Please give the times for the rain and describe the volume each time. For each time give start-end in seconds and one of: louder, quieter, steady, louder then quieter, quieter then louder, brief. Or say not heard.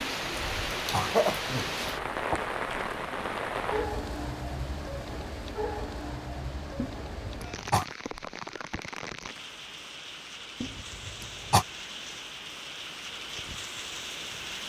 0.0-14.6 quieter.